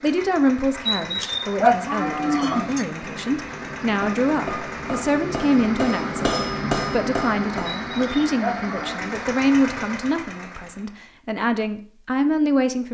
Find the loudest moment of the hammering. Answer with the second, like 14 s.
7 s.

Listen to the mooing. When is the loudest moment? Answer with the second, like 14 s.
2 s.